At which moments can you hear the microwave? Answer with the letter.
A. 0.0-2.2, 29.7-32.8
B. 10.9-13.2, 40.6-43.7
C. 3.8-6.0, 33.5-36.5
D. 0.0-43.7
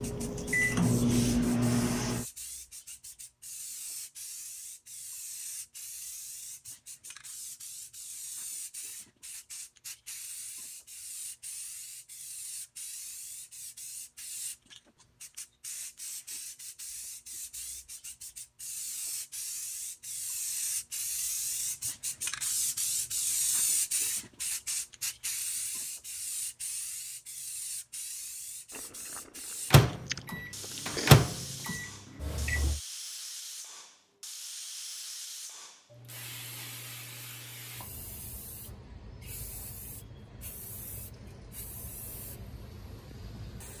A.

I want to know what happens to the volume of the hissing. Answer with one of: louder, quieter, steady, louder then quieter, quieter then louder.
louder then quieter.